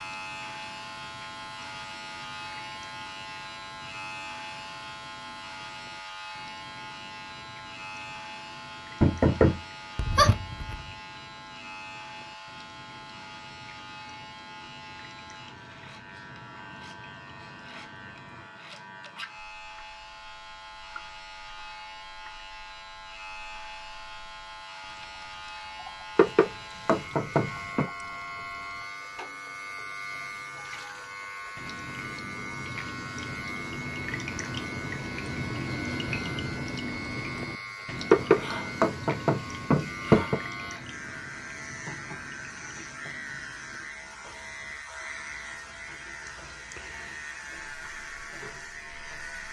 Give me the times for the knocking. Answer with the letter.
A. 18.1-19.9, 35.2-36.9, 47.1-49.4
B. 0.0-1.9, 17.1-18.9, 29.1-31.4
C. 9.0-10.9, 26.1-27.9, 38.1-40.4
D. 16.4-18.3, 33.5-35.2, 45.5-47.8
C.